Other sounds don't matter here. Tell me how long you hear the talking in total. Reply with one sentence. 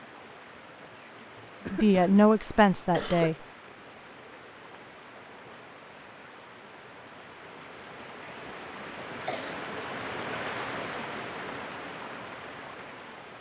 The talking can be heard for 2 seconds in total.